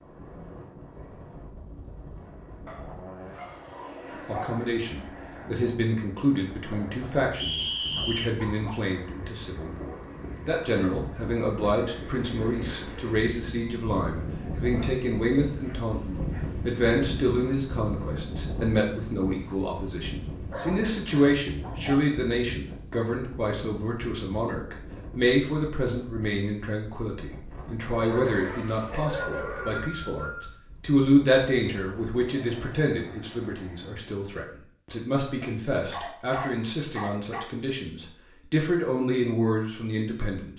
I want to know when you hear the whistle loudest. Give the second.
8 s.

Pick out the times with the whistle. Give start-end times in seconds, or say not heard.
7.3-8.3, 28.6-30.6.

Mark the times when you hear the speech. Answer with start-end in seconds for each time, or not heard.
4.2-40.5.